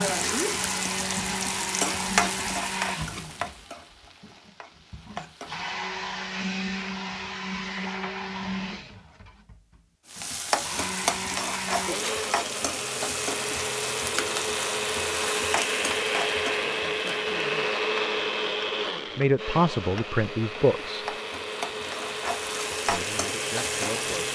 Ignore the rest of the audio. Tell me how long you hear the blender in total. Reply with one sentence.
You can hear the blender for 24 seconds altogether.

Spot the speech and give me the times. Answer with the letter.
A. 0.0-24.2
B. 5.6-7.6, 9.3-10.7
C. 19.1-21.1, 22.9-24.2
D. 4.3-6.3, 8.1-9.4
C.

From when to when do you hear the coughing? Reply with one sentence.
You can't hear the coughing here.